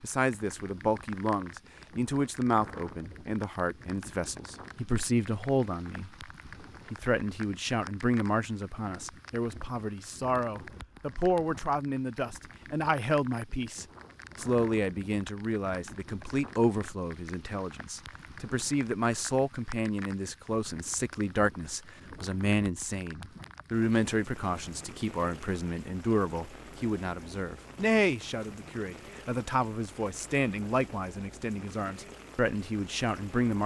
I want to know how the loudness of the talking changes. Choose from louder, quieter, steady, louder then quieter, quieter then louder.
steady.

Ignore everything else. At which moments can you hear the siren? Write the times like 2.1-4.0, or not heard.
not heard.